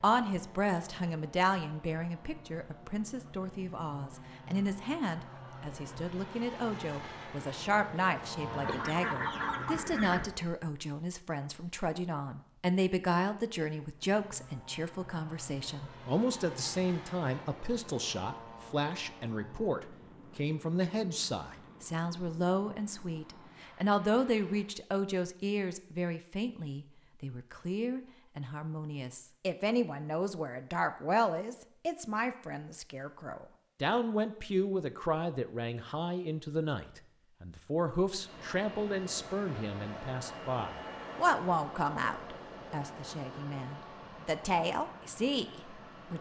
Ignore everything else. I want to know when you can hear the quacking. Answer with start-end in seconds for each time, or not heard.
8.4-10.2.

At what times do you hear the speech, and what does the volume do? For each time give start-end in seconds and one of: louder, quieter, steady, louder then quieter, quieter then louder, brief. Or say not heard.
0.0-46.1 steady.